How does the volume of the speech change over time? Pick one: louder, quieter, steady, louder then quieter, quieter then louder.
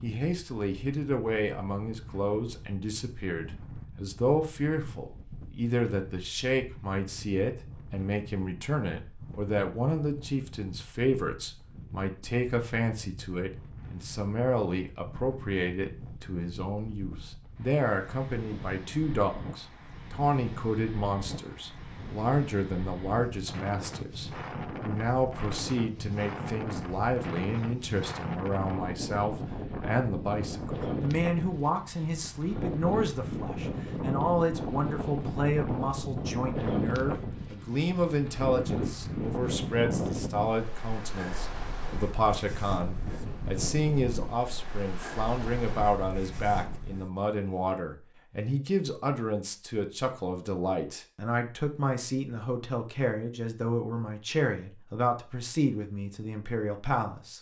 steady.